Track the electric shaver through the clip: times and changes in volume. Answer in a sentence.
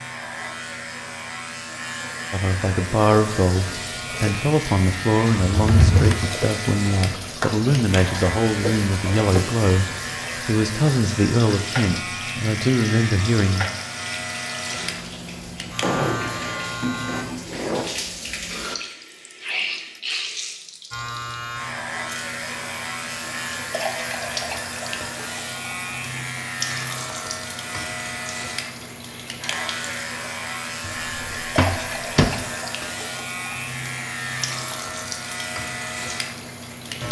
You can hear the electric shaver from 0.0 to 17.2 s, at a steady volume; and from 20.9 to 37.0 s, at a steady volume.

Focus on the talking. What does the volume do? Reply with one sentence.
The volume of the talking stays about the same.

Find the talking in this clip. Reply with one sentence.
You can hear the talking from 2.3 to 13.7 s.